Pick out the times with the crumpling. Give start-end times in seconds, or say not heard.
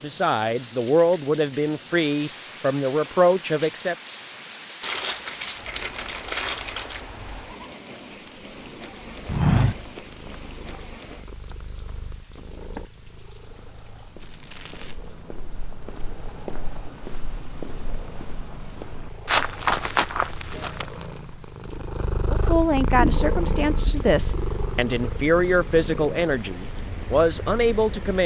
4.8-7.0, 14.2-15.0.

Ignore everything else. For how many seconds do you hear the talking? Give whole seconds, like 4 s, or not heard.
10 s.